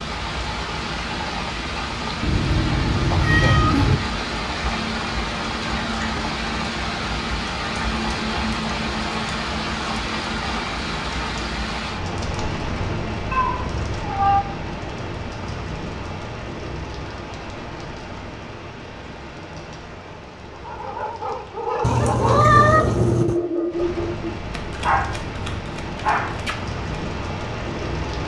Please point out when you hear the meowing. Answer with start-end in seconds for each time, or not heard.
2.2-4.0, 13.3-14.4, 21.8-23.4.